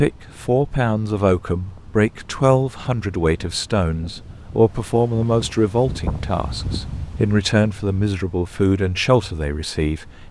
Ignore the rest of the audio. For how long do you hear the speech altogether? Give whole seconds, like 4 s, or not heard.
10 s.